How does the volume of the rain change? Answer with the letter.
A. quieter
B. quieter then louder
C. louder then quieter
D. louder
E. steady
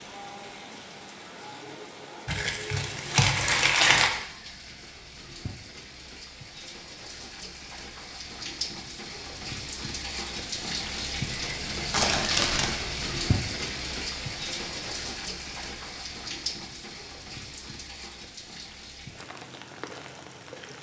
C.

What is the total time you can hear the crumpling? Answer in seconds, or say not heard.
3 s.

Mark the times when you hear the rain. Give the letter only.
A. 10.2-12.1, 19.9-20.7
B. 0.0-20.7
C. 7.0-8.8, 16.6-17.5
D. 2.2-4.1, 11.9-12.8
B.